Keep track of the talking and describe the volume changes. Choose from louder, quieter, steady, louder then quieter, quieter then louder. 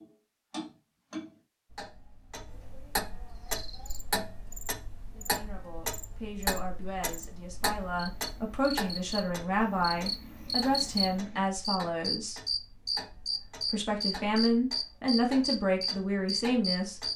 louder.